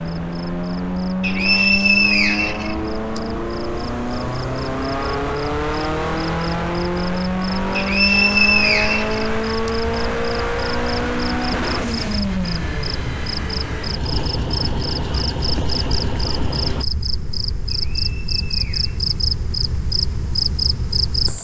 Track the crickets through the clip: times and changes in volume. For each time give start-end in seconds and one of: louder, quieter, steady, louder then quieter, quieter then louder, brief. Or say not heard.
0.0-21.4 louder.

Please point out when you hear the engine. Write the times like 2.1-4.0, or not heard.
0.0-16.9.